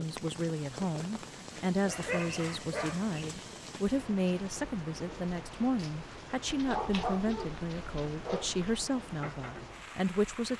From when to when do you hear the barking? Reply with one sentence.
You can hear the barking from 1.8 to 3.2 s and from 6.5 to 8.6 s.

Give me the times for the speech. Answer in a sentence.
The speech can be heard from 0.0 to 10.5 s.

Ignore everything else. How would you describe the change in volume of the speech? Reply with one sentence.
The volume of the speech stays about the same.